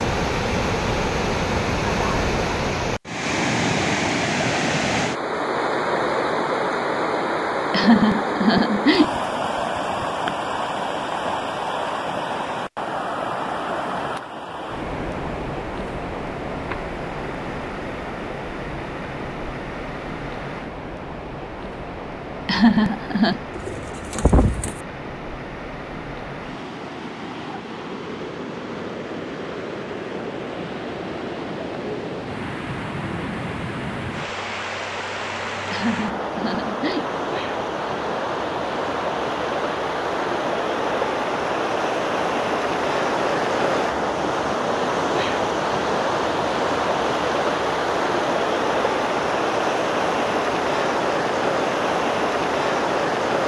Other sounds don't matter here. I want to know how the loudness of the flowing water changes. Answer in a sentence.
The loudness of the flowing water goes down, then up.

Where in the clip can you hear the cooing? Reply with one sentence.
The cooing can be heard from 23.6 to 24.8 s.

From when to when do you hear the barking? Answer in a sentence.
The barking can't be heard in this clip.